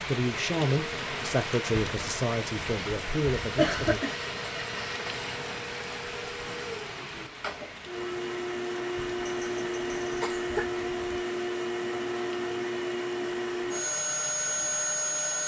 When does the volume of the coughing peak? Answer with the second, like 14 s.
4 s.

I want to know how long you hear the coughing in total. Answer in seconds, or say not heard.
3 s.